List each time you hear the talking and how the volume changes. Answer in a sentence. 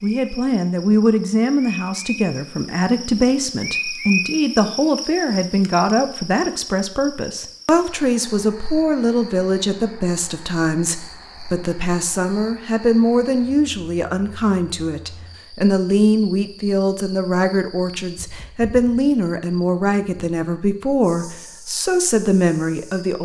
You can hear the talking from 0.0 to 23.2 s, at a steady volume.